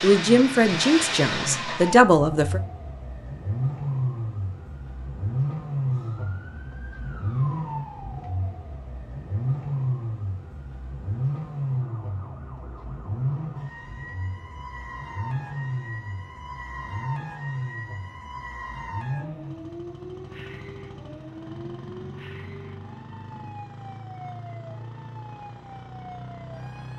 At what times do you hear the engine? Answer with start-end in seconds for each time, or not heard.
0.0-26.9.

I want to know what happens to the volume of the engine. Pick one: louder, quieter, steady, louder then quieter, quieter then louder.
quieter.